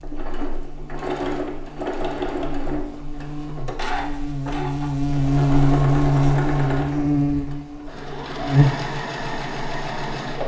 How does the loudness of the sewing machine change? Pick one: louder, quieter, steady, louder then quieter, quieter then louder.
steady.